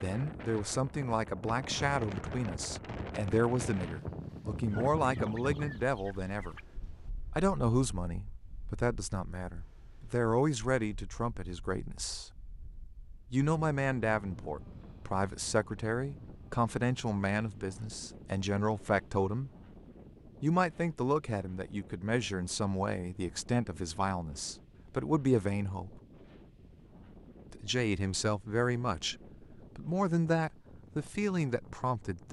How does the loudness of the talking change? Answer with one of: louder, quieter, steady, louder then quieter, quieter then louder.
steady.